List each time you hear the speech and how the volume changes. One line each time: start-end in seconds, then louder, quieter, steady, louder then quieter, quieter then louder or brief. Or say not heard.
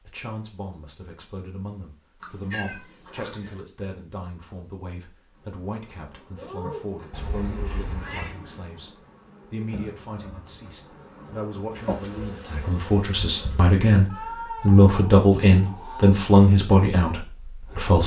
0.0-18.0 louder.